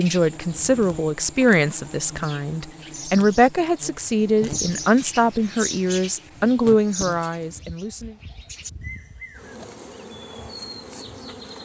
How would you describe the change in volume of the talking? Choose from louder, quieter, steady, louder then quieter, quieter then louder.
steady.